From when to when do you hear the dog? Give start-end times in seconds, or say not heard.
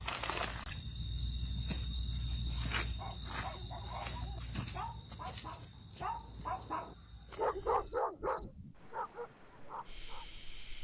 2.8-10.2.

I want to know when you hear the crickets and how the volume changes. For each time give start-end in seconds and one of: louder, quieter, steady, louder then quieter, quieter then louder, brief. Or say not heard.
0.0-10.7 quieter.